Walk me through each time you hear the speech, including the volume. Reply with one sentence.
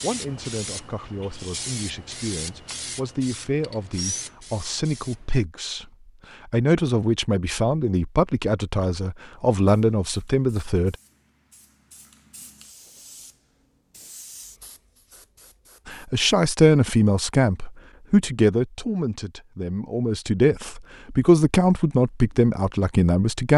The speech can be heard from 0.0 to 10.9 s, getting louder; and from 15.8 to 23.5 s, getting quieter then louder.